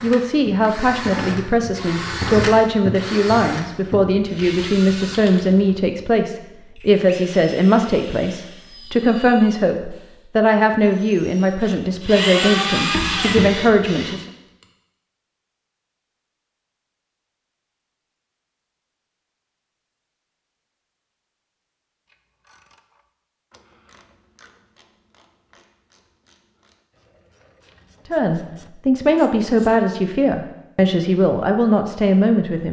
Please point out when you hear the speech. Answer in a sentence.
The speech can be heard from 0.0 to 14.2 s and from 28.1 to 32.6 s.